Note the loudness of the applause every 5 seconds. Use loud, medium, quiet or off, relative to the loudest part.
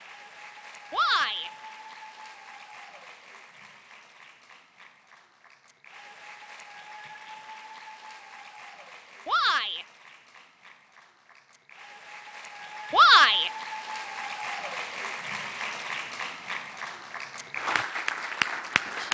quiet, quiet, medium, loud.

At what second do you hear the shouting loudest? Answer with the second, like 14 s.
13 s.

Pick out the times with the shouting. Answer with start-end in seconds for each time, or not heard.
0.9-1.5, 9.2-9.8, 12.9-13.5.